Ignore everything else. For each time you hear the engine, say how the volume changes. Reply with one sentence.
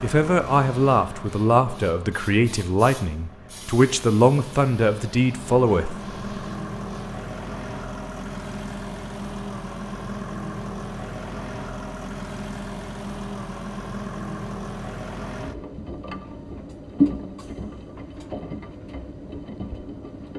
The engine can be heard from 0.0 to 20.3 s, getting louder.